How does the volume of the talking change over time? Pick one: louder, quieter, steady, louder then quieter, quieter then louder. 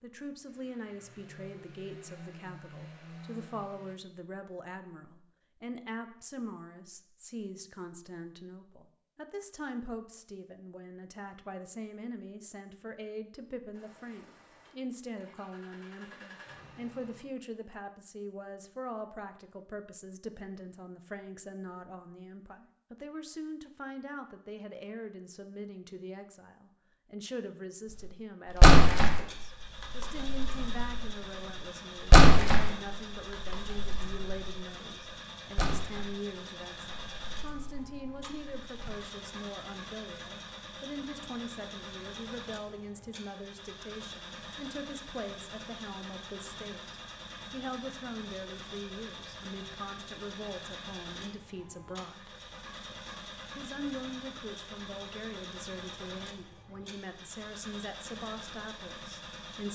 steady.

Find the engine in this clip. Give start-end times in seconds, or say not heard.
0.1-4.0, 13.7-17.2, 29.1-59.7.